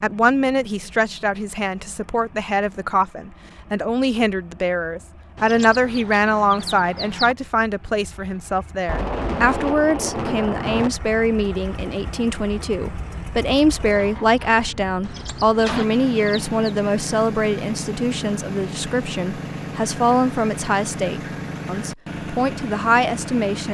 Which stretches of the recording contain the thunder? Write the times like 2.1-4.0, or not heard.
8.8-10.9.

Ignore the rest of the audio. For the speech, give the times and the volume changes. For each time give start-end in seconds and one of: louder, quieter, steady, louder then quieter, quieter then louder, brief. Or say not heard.
0.0-23.7 steady.